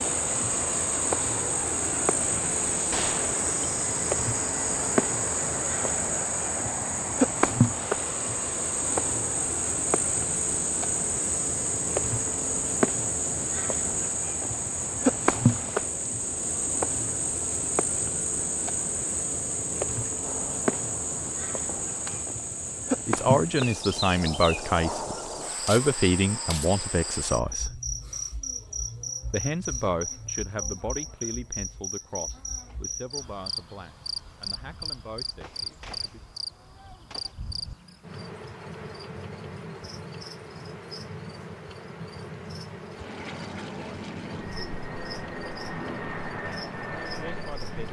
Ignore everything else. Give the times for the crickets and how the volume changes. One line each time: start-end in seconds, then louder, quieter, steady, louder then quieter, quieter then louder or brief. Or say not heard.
0.0-47.8 quieter.